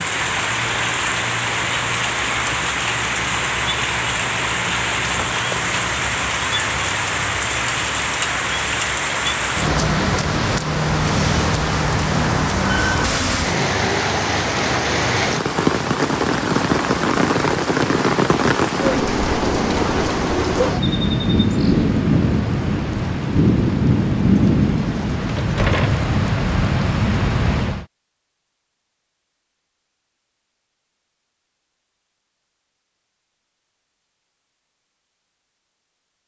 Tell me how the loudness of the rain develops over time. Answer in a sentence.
The volume of the rain stays about the same.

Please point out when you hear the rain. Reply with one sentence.
You can hear the rain from 0.0 to 27.9 s.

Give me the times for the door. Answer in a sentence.
You can hear the door from 25.2 to 26.1 s.